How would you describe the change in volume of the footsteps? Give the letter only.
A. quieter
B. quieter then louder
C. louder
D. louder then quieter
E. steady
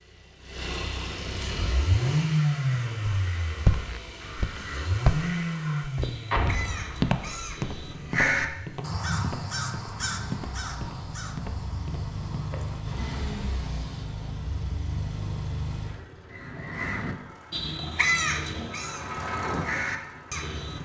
A.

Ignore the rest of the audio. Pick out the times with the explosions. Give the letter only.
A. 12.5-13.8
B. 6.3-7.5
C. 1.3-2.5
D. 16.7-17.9
B.